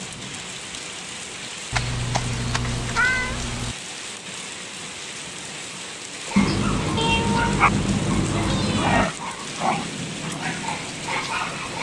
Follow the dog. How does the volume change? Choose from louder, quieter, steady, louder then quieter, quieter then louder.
louder then quieter.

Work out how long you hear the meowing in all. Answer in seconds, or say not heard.
5 s.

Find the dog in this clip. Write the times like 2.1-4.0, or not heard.
6.2-11.7.